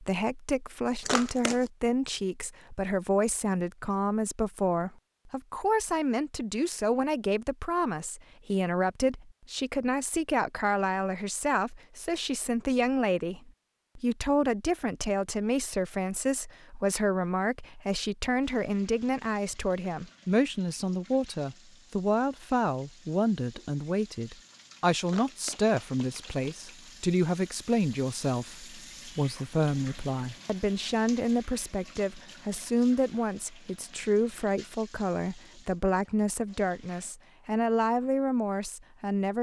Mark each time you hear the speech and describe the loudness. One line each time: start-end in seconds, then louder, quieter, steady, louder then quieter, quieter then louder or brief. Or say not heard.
0.0-39.3 steady.